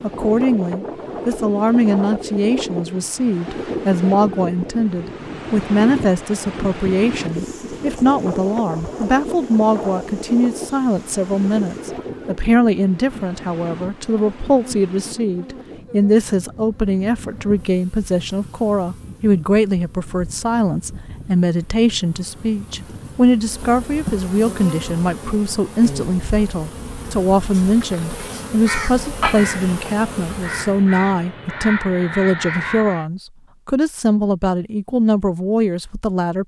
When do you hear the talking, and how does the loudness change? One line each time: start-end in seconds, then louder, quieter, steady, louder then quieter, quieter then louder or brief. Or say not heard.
0.0-36.4 steady.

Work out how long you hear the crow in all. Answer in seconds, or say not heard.
5 s.